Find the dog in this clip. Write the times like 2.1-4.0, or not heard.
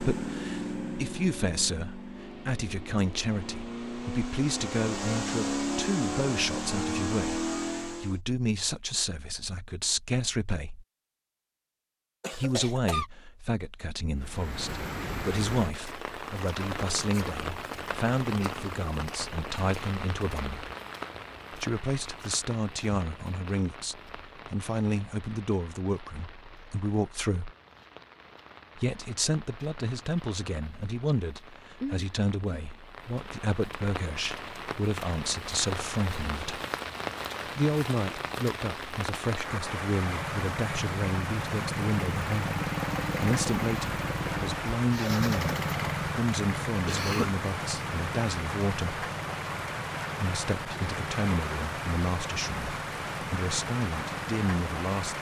not heard.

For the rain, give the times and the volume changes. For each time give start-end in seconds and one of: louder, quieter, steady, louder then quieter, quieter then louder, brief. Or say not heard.
14.2-55.1 quieter then louder.